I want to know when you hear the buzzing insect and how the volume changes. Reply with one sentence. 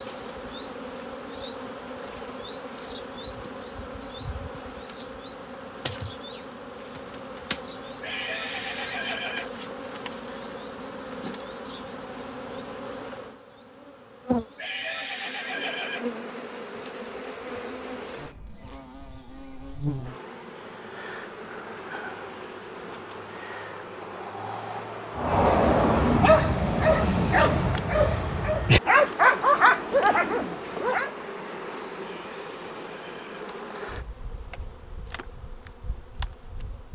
You can hear the buzzing insect from 0.0 to 36.9 s, at a steady volume.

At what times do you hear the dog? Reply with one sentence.
You can hear the dog from 25.1 to 31.1 s.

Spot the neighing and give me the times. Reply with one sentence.
The neighing can be heard from 8.0 to 9.6 s, from 14.6 to 16.1 s and from 32.0 to 33.3 s.